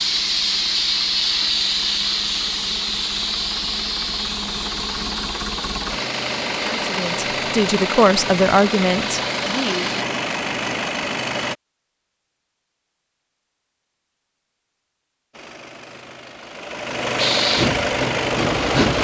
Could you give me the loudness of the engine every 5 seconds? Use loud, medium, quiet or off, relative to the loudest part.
quiet, loud, loud, loud.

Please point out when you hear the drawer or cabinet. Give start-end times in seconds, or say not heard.
not heard.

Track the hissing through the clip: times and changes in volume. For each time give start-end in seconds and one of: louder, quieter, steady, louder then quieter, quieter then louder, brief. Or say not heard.
0.0-10.1 quieter
17.1-18.9 brief.